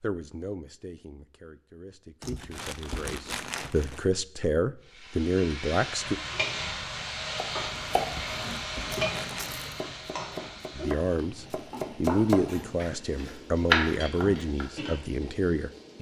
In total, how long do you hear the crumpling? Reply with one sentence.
The crumpling can be heard for 4 seconds in total.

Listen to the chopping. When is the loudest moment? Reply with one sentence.
The volume of the chopping peaks at 14 seconds.